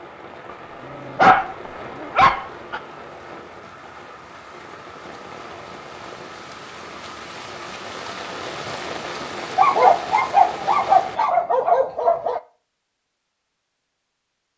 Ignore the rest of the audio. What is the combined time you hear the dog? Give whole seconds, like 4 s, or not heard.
5 s.